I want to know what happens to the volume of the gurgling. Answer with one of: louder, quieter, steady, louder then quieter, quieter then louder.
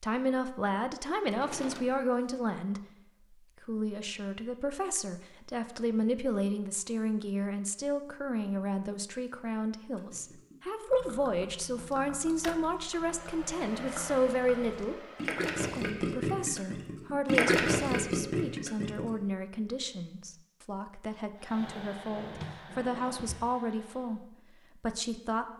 louder.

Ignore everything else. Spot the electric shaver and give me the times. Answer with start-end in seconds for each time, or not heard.
not heard.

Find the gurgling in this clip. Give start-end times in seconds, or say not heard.
9.9-19.1.